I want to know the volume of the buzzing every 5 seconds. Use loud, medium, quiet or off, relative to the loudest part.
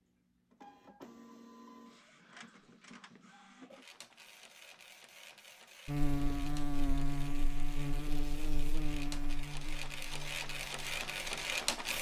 off, loud, quiet.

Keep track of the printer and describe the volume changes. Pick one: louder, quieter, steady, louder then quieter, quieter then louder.
louder.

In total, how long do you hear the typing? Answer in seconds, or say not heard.
not heard.